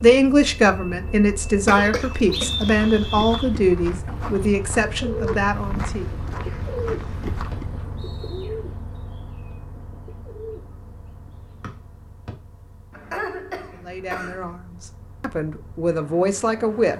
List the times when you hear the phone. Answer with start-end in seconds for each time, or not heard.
not heard.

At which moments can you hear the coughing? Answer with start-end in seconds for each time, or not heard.
1.6-2.8, 12.9-14.6.